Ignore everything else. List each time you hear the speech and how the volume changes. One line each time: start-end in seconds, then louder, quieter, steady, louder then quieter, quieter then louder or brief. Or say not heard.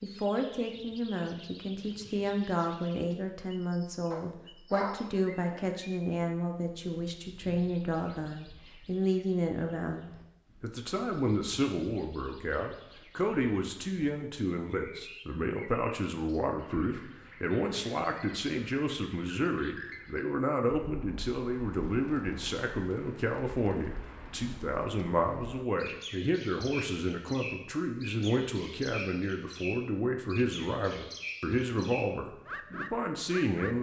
0.0-33.7 steady.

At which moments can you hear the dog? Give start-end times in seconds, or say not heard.
4.1-5.7.